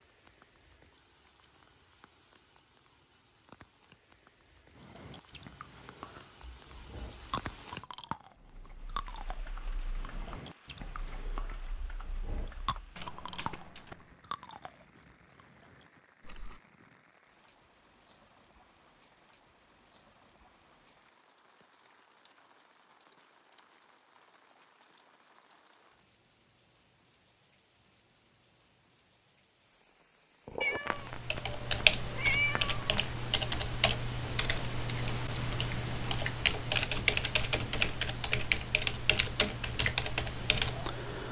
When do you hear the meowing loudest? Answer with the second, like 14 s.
32 s.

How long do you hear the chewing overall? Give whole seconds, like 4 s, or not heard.
12 s.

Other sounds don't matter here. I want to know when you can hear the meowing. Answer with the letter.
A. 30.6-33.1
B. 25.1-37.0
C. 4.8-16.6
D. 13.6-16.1
A.